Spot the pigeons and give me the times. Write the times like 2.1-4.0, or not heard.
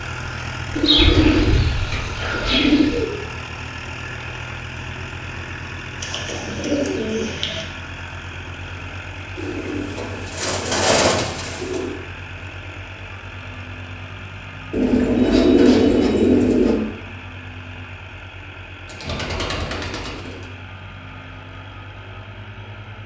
0.7-3.0, 6.0-7.7, 9.3-11.9, 14.7-16.8, 18.9-20.4.